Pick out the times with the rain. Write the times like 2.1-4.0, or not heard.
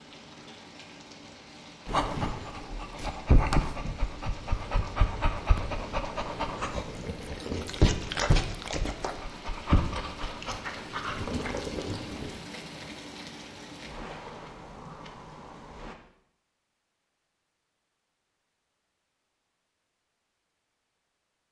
0.0-15.9.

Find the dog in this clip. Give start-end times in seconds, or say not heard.
1.9-12.3.